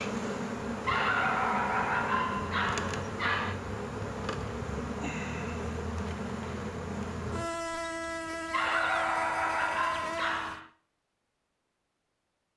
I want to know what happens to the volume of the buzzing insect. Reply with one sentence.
The volume of the buzzing insect stays about the same.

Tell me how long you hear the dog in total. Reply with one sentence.
The dog can be heard for 5 seconds in total.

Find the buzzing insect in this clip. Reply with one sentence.
You can hear the buzzing insect from 0.0 to 10.6 s.